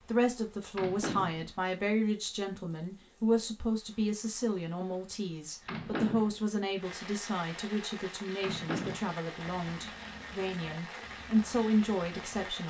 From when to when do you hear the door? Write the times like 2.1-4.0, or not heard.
0.8-1.4, 5.7-6.4, 8.4-9.2.